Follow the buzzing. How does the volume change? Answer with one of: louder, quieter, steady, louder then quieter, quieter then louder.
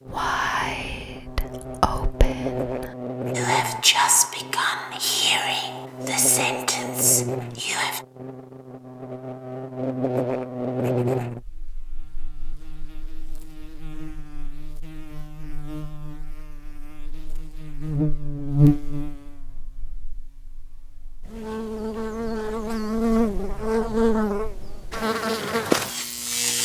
louder.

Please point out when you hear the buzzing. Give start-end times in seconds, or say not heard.
0.0-26.6.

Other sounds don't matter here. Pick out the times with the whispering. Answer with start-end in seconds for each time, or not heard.
0.1-8.1.